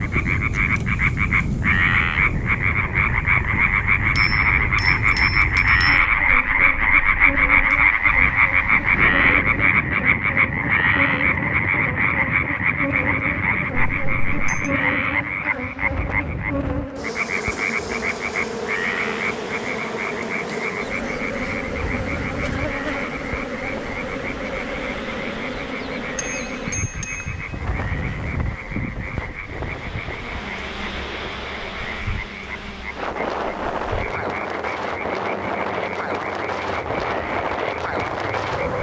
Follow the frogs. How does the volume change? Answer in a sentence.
The volume of the frogs goes down.